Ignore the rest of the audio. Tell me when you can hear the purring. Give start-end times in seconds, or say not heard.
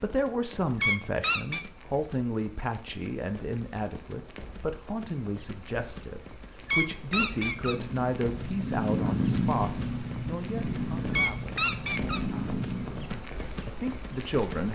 7.6-13.1.